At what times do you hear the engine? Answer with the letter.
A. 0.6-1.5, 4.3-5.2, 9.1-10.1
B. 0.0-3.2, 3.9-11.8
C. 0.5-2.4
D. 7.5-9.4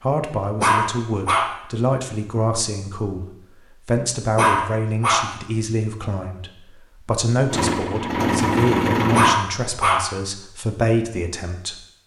D.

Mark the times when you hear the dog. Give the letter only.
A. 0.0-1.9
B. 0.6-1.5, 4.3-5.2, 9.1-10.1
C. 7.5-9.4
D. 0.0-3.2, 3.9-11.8
B.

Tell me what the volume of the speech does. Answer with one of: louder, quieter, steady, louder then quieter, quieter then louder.
steady.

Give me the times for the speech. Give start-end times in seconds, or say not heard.
0.0-3.2, 3.9-11.8.